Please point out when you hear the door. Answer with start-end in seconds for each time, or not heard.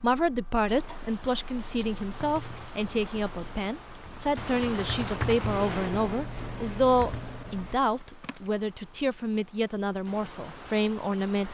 not heard.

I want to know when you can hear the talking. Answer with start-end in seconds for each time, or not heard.
0.0-11.4.